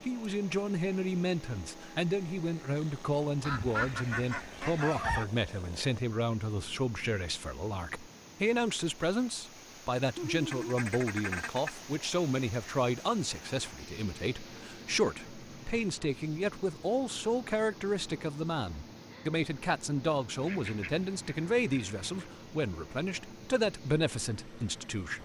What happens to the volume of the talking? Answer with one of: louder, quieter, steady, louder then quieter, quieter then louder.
steady.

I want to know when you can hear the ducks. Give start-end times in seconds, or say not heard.
3.4-5.2, 10.2-11.7, 20.4-22.3.